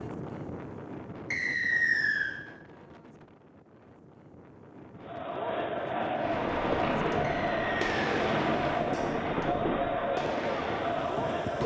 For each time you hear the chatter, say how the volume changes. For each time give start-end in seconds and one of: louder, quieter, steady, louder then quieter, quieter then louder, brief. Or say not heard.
5.0-11.6 steady.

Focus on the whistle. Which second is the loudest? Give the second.
2 s.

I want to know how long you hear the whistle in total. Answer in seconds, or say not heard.
2 s.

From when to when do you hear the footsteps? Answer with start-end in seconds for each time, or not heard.
not heard.